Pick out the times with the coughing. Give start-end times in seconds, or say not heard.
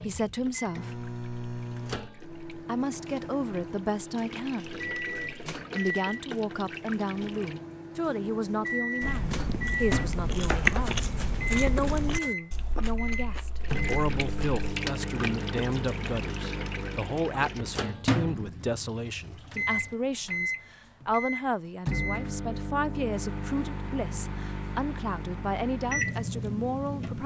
not heard.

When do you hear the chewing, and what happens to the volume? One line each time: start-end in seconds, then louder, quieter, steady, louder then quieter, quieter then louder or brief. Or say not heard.
9.0-14.7 louder then quieter.